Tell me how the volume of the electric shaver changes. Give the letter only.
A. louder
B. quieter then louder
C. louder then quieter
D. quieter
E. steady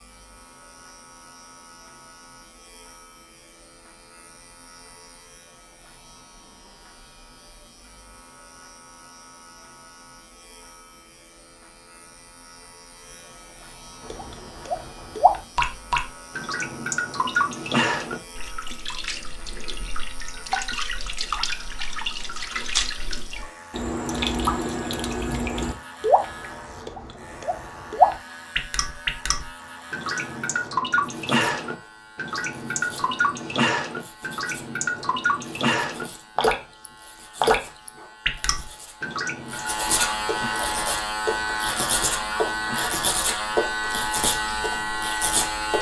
A.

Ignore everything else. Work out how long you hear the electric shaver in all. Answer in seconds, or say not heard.
46 s.